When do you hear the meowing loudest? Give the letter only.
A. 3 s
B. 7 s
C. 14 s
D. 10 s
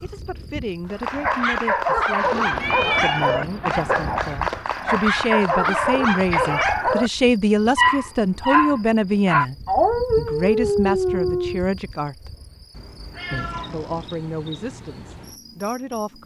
A.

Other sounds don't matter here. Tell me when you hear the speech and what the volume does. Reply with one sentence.
The speech can be heard from 0.0 to 9.6 s, getting louder; briefly from 10.2 to 12.3 s; and briefly from 13.7 to 16.2 s.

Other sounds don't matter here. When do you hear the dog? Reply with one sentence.
You can hear the dog from 0.8 to 11.7 s.